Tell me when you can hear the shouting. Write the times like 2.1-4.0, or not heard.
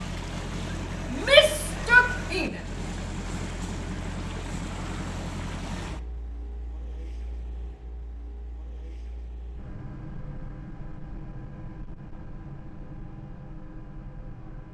1.1-2.6.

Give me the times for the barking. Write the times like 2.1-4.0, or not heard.
not heard.